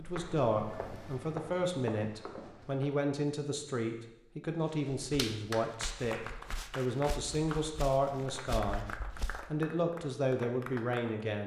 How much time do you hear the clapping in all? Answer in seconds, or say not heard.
6 s.